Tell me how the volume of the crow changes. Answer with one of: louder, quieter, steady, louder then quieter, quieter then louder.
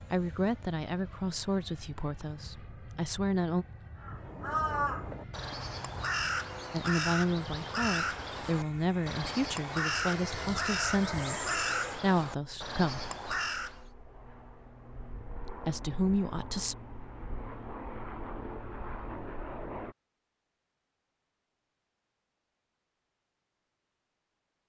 steady.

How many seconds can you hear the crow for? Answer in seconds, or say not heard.
10 s.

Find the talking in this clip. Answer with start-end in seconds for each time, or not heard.
0.1-3.6, 6.7-13.1, 15.4-16.8.